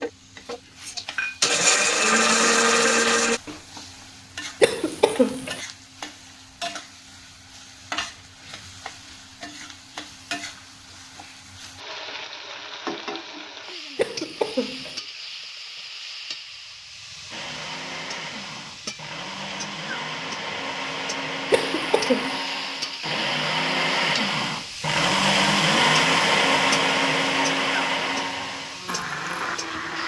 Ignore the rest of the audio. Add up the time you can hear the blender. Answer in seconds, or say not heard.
16 s.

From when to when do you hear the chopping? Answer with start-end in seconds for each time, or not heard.
not heard.